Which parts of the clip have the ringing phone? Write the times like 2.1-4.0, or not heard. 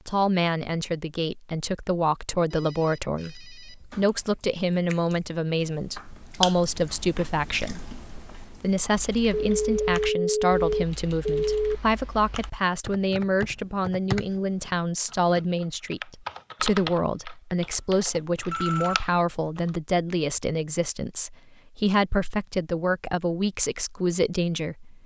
2.5-3.8, 9.3-11.8, 17.6-19.0.